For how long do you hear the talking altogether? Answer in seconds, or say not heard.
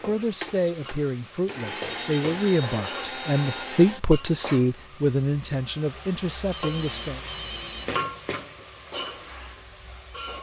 7 s.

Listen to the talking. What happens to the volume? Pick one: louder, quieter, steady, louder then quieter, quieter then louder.
louder then quieter.